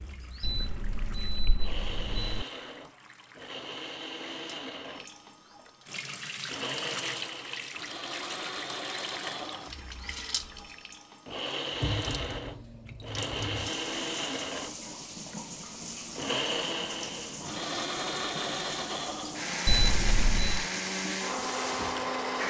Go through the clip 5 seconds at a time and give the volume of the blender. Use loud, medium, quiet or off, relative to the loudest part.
medium, medium, loud, loud, loud.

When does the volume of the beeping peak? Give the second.
20 s.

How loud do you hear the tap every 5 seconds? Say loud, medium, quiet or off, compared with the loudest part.
quiet, loud, loud, loud, loud.